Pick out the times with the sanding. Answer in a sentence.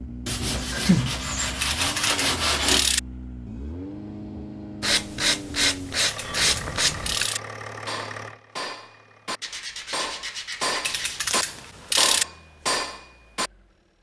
The sanding can be heard from 0.2 to 2.9 s, from 4.8 to 7.3 s and from 9.4 to 11.3 s.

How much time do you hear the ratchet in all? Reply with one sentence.
The ratchet can be heard for 4 seconds in total.